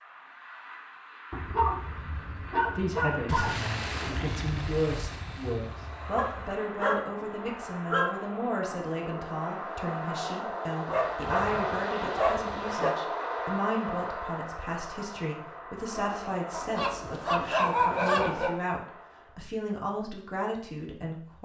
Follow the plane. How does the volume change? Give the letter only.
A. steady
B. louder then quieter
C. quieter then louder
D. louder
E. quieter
B.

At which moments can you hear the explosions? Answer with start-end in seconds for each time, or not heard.
3.2-6.5.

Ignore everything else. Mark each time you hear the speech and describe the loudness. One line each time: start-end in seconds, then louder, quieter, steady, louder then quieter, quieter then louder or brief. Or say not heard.
2.8-21.4 steady.